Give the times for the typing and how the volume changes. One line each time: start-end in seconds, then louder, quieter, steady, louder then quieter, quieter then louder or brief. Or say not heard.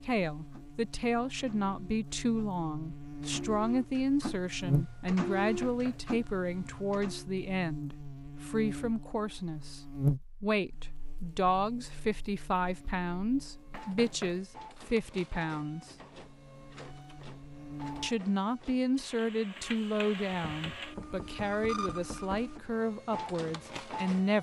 not heard.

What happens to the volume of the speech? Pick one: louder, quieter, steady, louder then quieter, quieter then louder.
steady.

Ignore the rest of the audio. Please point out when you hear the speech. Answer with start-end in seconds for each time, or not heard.
0.0-9.8, 10.4-15.9, 18.0-24.3.